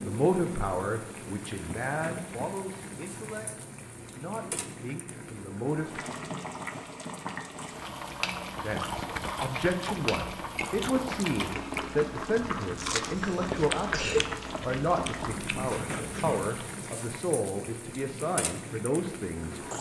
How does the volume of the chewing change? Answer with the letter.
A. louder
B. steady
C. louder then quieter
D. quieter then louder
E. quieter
B.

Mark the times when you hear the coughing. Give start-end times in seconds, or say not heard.
13.1-14.2.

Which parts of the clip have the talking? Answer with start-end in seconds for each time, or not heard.
0.0-6.1, 8.6-19.6.